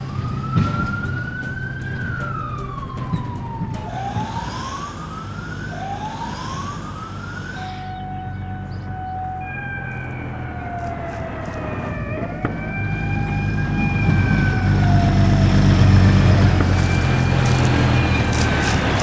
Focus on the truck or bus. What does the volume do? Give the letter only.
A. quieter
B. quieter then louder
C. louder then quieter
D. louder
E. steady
B.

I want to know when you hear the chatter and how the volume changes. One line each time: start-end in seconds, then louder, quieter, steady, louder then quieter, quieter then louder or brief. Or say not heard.
not heard.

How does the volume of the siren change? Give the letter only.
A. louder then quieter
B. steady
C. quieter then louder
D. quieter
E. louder
B.